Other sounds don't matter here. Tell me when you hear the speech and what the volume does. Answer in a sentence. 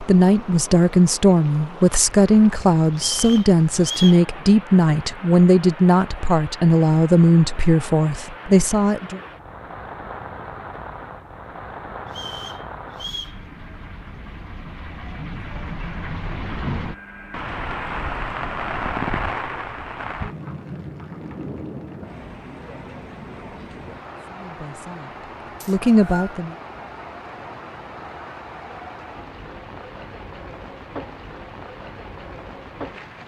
The speech can be heard from 0.0 to 9.2 s, at a steady volume; and briefly from 24.2 to 26.6 s.